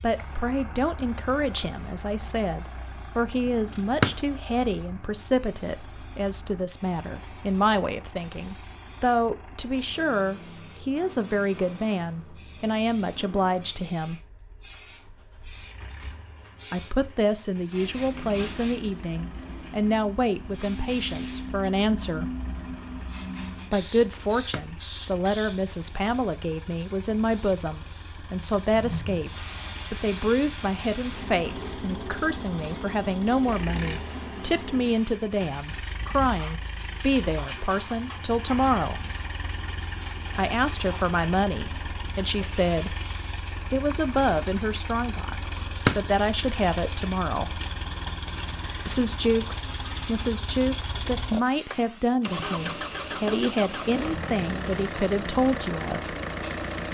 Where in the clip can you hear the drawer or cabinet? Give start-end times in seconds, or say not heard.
3.5-4.2, 23.9-24.6, 45.3-46.0.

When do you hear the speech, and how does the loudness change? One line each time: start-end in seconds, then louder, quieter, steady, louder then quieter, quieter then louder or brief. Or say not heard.
0.0-14.2 steady
16.7-22.4 steady
23.7-39.0 steady
40.4-43.0 brief
43.5-47.6 quieter then louder
48.9-56.1 steady.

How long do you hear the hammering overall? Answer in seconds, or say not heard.
not heard.